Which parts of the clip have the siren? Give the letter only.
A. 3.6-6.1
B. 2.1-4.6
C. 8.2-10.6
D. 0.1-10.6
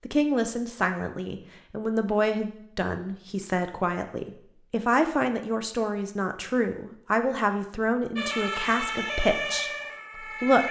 C.